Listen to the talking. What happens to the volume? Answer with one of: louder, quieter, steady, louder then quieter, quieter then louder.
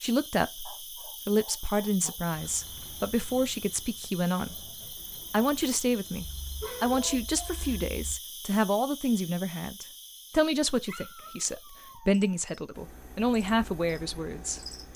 steady.